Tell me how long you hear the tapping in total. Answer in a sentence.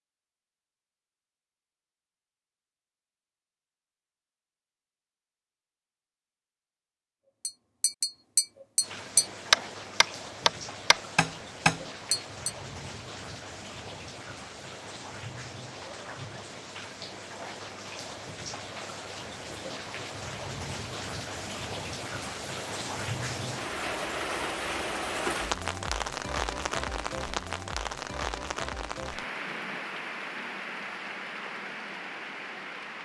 You can hear the tapping for 5 seconds altogether.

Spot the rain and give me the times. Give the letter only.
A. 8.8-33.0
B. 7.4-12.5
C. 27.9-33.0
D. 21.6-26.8
A.